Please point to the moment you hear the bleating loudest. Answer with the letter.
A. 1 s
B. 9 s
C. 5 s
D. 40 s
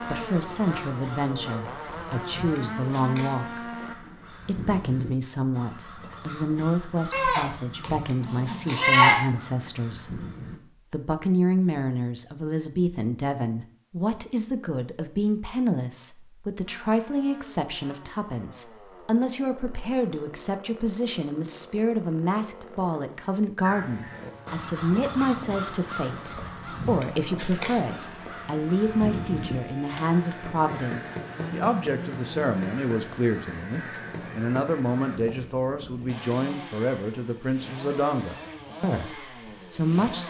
B.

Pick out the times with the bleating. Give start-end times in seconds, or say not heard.
7.1-9.2.